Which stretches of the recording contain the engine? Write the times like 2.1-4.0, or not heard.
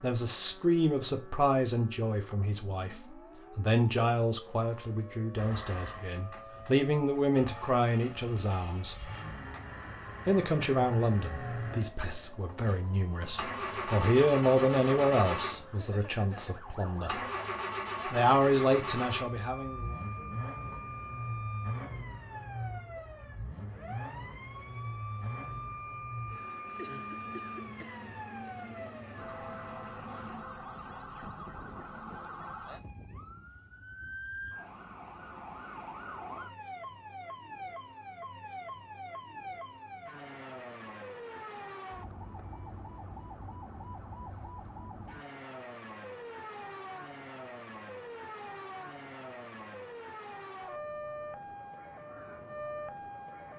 5.3-30.4.